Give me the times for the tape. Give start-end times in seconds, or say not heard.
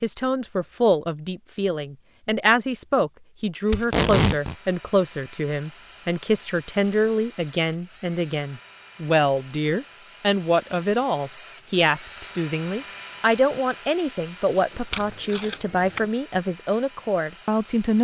3.7-4.5, 14.9-16.1.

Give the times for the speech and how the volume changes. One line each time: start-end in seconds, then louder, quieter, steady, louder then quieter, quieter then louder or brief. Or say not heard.
0.0-17.9 steady.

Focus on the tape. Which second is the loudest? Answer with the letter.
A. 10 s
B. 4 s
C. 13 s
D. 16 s
B.